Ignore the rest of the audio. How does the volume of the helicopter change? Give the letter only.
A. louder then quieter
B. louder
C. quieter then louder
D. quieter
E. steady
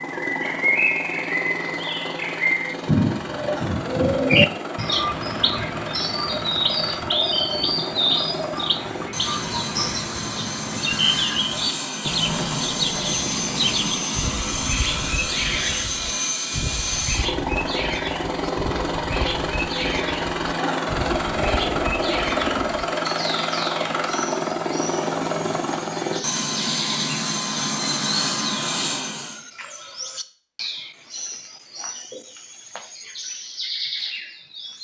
B.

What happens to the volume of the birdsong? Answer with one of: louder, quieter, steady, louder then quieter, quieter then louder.
quieter.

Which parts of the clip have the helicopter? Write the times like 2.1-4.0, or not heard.
0.0-29.4.